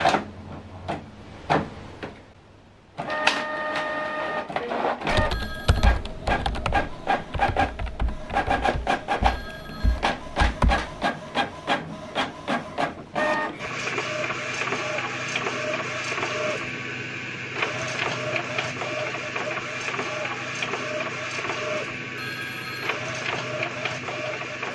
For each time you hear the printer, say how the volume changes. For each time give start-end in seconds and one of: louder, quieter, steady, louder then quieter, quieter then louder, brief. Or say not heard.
0.0-24.6 steady.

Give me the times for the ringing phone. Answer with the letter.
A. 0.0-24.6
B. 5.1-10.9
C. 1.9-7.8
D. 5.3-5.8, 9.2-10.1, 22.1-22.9
D.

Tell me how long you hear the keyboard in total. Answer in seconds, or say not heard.
6 s.